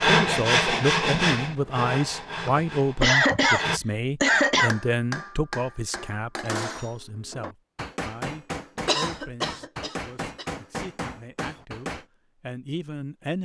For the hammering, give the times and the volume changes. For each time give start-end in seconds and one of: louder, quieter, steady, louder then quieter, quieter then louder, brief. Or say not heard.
4.3-12.1 steady.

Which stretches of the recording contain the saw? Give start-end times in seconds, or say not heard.
0.0-3.8.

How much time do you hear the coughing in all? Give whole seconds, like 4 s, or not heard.
4 s.